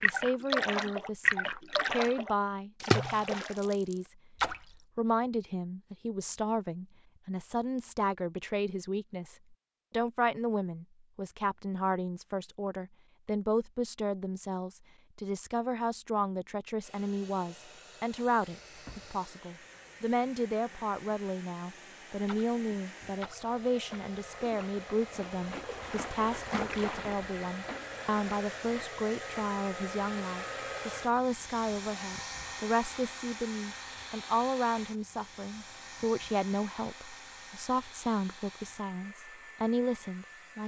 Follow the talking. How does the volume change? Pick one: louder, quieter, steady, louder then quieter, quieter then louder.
steady.